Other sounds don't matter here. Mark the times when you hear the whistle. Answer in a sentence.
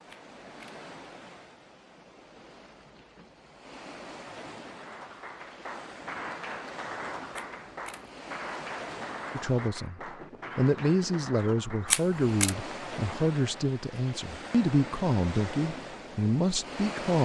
You can't hear the whistle here.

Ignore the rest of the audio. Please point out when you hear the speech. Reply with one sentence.
The speech can be heard from 9.3 to 17.2 s.